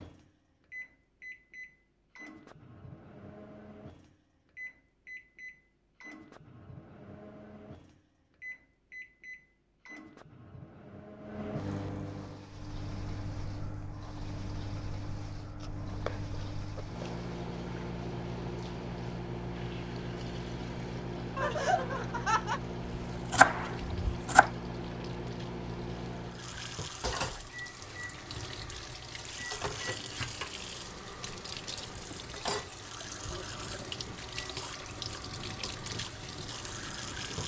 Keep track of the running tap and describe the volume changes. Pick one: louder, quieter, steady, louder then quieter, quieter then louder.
louder.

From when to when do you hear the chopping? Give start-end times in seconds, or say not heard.
15.6-17.1, 23.3-24.5.